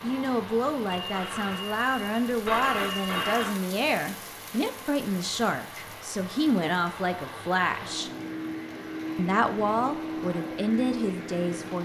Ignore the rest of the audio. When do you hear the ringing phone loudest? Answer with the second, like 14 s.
3 s.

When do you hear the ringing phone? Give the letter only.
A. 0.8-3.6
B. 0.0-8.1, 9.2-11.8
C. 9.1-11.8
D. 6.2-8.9
A.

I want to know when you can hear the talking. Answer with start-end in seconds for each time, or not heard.
0.0-8.1, 9.2-11.8.